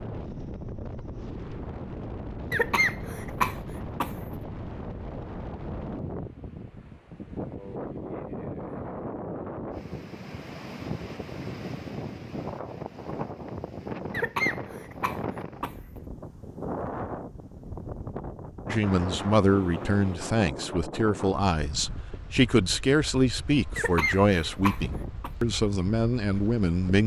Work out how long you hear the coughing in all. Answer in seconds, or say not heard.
5 s.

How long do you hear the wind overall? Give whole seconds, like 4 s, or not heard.
27 s.